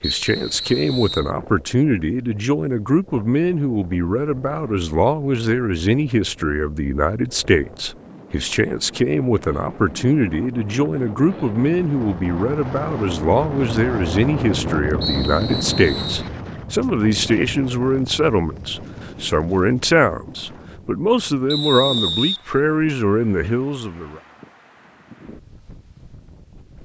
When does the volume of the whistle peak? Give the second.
22 s.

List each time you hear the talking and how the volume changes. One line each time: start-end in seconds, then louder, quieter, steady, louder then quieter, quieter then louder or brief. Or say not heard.
0.0-24.2 steady.